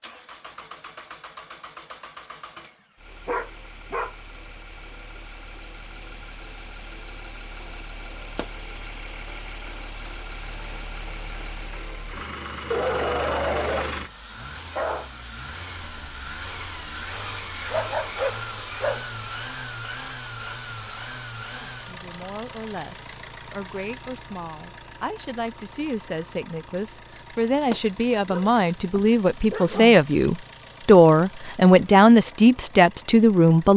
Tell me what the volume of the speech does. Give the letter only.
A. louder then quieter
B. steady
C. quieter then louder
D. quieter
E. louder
E.